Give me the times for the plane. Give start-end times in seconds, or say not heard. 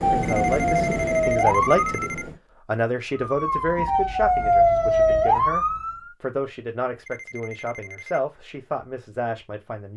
0.0-2.4.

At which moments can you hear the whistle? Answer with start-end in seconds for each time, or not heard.
not heard.